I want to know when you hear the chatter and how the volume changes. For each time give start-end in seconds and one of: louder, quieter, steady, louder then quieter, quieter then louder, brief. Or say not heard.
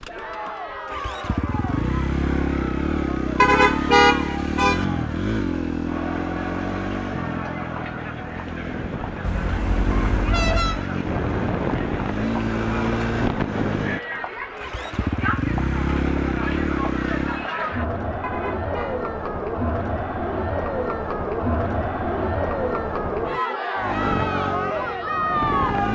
0.0-25.9 louder.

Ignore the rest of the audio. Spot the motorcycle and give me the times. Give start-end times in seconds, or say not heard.
0.0-17.5, 23.8-25.9.